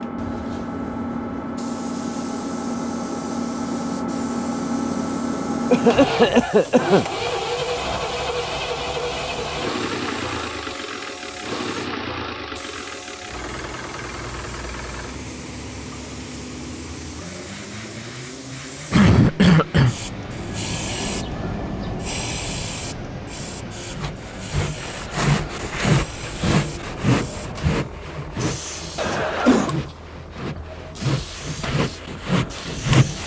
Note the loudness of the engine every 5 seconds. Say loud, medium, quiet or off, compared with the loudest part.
loud, loud, medium, medium, quiet, quiet, quiet.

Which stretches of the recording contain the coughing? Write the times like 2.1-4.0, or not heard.
5.7-7.0, 18.9-19.9, 28.9-29.8.